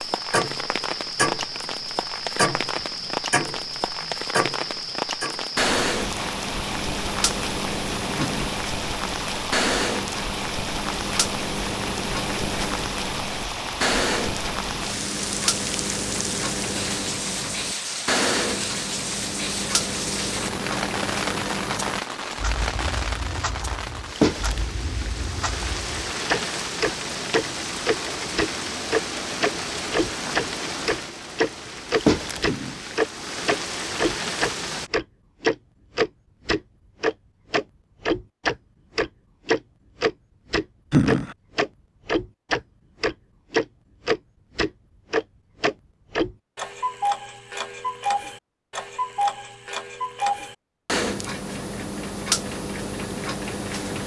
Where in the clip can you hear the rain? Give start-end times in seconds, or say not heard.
0.0-34.9.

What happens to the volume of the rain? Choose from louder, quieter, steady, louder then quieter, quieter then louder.
steady.